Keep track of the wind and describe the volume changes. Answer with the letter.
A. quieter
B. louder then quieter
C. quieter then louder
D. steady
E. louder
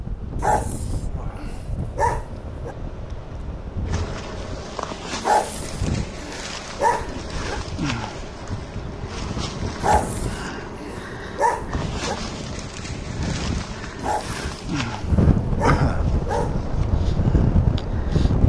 E.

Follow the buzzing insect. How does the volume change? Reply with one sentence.
The loudness of the buzzing insect goes up.